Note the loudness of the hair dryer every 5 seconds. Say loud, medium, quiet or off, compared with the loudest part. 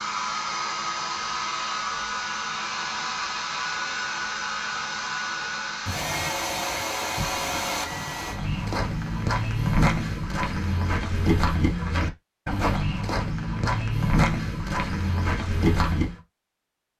loud, loud, off, off.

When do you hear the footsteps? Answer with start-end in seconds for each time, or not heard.
7.3-16.2.